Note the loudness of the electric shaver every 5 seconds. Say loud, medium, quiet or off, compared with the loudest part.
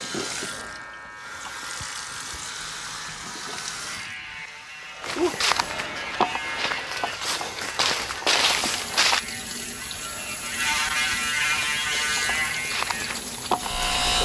quiet, medium, loud.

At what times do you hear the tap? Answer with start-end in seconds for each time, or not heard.
0.0-5.5, 8.3-14.2.